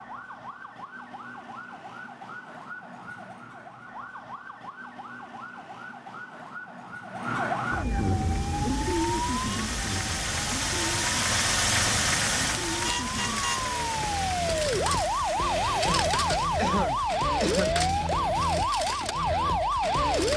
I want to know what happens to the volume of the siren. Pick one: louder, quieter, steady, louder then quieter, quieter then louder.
louder.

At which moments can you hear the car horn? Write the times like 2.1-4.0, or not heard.
12.7-13.7.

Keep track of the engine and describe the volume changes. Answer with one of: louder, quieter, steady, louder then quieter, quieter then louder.
louder then quieter.